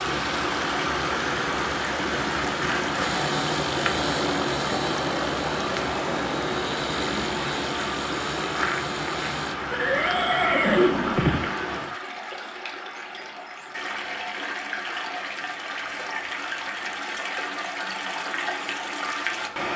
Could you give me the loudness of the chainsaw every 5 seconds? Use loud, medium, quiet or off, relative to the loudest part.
loud, loud, off, off.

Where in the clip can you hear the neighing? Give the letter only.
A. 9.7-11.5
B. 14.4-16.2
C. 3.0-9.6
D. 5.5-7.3
A.